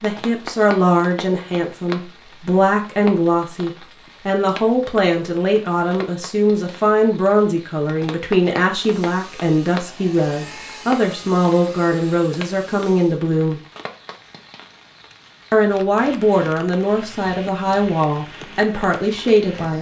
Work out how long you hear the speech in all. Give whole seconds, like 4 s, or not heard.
18 s.